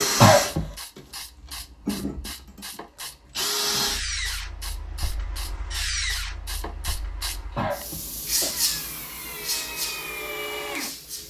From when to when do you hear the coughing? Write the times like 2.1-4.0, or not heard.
0.2-0.7, 7.5-8.5.